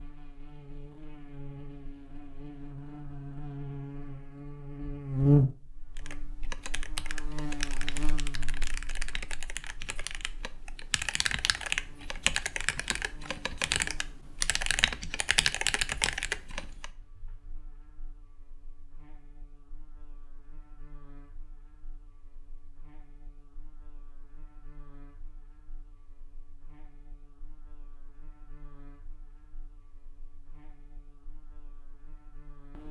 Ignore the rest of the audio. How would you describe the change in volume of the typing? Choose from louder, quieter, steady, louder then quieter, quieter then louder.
louder.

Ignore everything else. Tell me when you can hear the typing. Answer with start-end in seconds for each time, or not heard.
6.0-16.9.